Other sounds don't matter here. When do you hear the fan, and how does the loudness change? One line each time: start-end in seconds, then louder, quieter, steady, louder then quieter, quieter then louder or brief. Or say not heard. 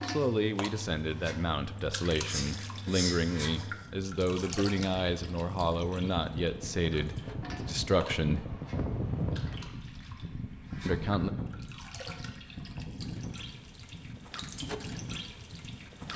0.0-16.1 louder then quieter.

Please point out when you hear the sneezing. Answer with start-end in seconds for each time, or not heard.
2.1-3.6.